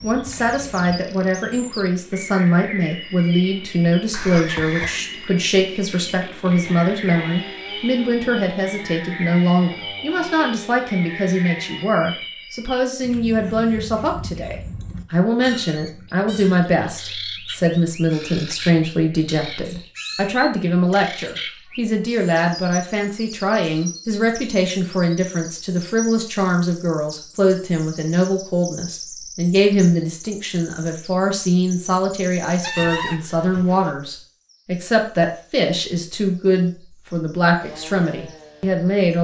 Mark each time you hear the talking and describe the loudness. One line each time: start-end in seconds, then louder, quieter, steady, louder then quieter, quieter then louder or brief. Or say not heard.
0.0-39.2 steady.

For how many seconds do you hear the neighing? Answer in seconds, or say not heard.
2 s.